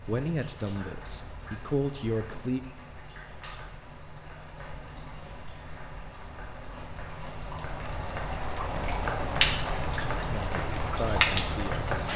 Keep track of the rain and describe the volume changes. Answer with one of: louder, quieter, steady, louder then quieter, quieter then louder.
louder.